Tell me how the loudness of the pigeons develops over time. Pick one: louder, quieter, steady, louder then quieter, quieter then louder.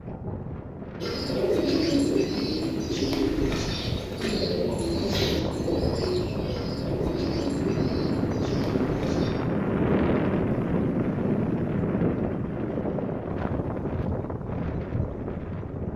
quieter.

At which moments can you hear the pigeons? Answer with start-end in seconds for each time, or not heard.
1.0-9.3.